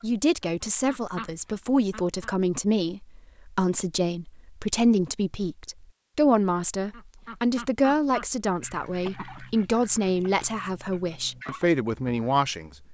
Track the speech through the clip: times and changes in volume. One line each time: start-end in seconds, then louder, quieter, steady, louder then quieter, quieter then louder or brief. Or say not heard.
0.0-12.7 steady.